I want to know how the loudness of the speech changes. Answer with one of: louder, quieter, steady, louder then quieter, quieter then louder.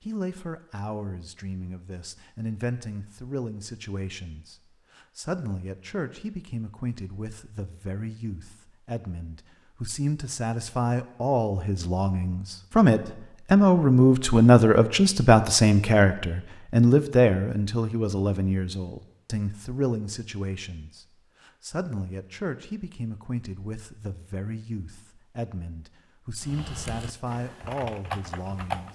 louder then quieter.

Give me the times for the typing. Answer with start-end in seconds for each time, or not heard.
26.4-28.9.